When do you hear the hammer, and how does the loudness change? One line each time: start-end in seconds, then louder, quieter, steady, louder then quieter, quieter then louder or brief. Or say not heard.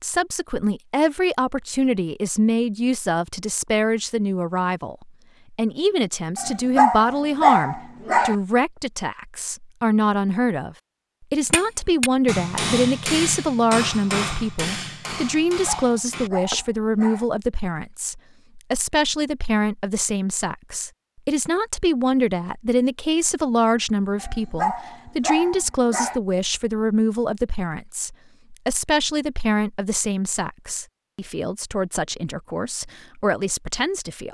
11.5-16.6 quieter.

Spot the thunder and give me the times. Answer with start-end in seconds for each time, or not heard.
not heard.